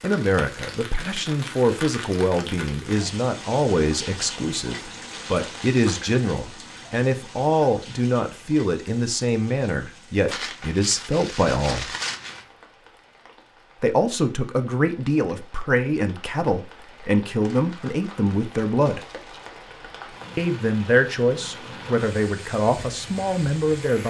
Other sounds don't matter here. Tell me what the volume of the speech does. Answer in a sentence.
The loudness of the speech stays about the same.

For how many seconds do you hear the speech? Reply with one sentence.
The speech can be heard for 21 seconds in total.